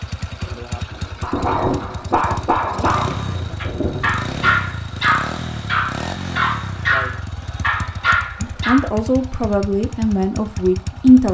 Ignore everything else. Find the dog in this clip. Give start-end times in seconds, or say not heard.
1.2-8.8.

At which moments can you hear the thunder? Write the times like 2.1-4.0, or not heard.
0.4-4.7.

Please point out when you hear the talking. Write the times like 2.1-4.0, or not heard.
8.4-11.2.